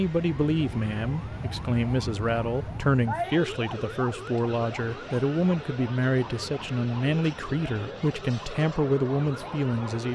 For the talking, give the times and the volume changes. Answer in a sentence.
You can hear the talking from 0.0 to 10.1 s, at a steady volume.